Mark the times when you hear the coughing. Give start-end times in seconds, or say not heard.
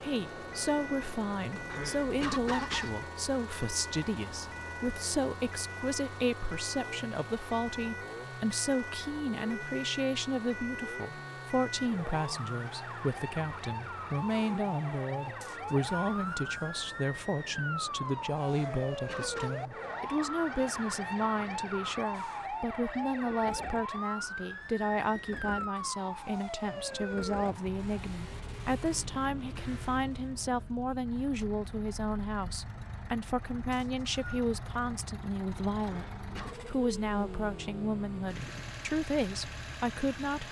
1.6-3.0, 18.6-19.6, 35.8-36.6.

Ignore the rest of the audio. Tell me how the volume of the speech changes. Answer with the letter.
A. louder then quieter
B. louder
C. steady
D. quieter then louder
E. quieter
C.